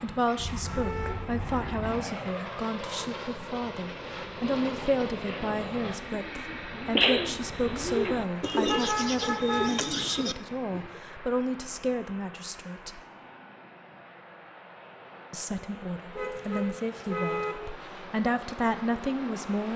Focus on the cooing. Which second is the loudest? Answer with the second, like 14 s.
7 s.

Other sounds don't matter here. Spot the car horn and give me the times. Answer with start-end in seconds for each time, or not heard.
0.3-1.9, 8.7-9.7, 16.1-17.6.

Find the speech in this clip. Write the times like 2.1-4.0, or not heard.
0.0-13.0, 15.3-19.7.